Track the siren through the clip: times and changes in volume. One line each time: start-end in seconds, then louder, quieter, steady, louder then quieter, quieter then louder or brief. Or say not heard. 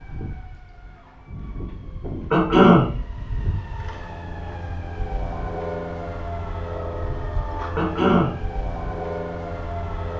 0.0-10.1 louder.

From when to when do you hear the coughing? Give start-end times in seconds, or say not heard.
2.3-2.9, 7.8-8.4.